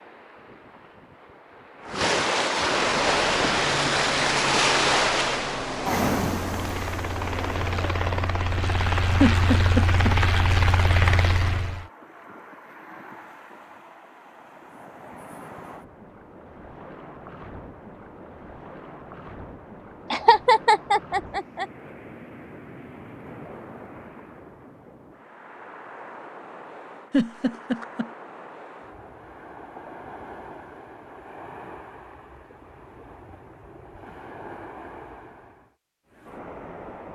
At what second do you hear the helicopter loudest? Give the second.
11 s.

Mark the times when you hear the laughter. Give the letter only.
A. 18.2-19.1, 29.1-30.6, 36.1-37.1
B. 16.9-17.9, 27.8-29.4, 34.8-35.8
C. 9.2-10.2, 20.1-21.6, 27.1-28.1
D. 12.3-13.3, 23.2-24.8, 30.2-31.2
C.